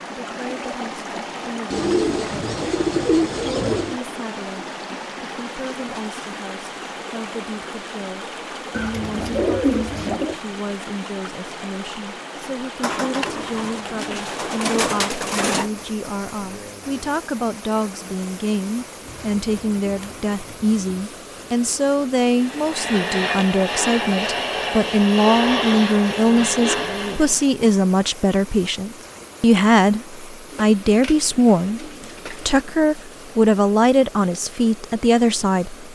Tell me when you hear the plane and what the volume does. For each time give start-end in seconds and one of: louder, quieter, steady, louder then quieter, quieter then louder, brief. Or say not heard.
22.4-27.5 steady.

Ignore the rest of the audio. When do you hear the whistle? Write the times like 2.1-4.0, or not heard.
not heard.